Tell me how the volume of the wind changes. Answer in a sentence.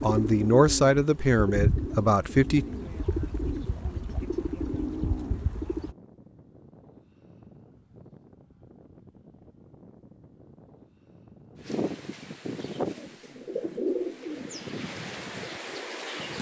The volume of the wind goes up.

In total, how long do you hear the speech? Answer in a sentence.
You can hear the speech for 3 seconds altogether.